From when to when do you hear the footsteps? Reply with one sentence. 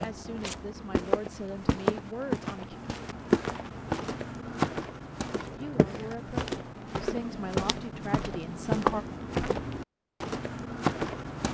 You can hear the footsteps from 0.0 to 11.5 s.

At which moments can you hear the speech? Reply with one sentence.
You can hear the speech from 0.0 to 2.8 s and from 5.5 to 9.1 s.